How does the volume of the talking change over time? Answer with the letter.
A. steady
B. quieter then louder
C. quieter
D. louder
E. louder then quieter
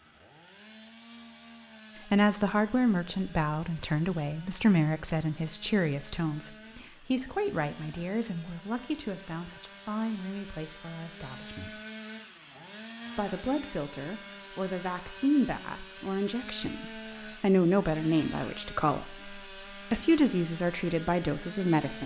B.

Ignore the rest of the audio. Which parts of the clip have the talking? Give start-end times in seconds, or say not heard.
2.0-11.8, 13.2-22.0.